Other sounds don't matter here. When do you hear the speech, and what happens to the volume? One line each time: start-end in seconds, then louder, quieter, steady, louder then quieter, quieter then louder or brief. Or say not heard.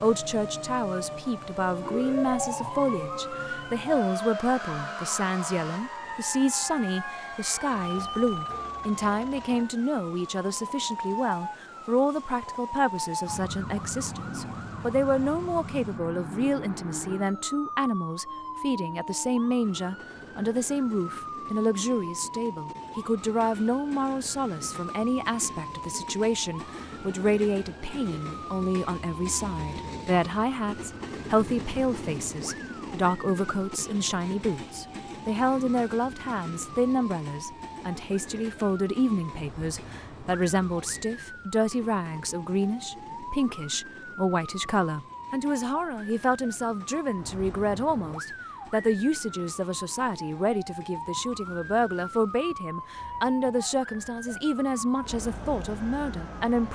0.0-56.7 steady.